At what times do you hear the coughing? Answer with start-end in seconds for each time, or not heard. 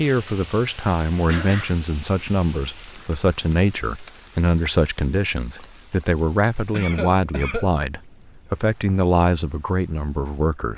1.2-1.8, 6.7-7.8.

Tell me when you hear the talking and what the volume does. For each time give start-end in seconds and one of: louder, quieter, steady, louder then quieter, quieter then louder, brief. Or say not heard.
0.0-10.7 steady.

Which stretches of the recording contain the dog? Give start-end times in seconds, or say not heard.
not heard.